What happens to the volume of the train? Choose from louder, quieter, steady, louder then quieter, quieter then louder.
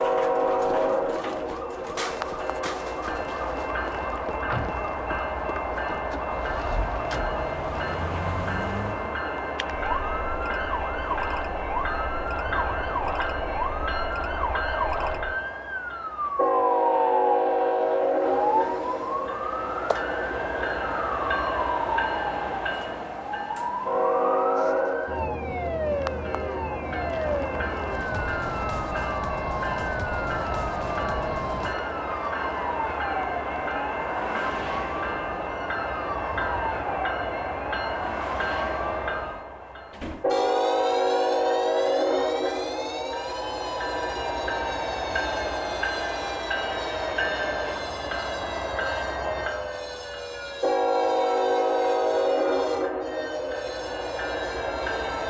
steady.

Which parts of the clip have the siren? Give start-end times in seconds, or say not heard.
0.0-55.2.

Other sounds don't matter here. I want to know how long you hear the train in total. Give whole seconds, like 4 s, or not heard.
55 s.